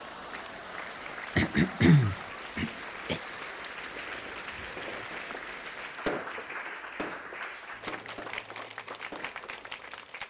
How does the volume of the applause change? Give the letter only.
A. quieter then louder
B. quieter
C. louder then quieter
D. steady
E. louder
D.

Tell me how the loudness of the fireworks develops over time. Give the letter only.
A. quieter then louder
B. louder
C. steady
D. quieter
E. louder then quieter
E.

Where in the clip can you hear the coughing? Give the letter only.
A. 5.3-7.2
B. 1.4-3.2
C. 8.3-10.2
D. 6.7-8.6
B.